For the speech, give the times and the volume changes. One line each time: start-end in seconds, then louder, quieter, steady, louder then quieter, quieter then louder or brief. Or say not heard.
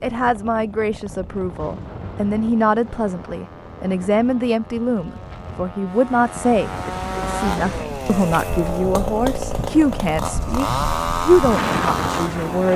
0.0-12.7 steady.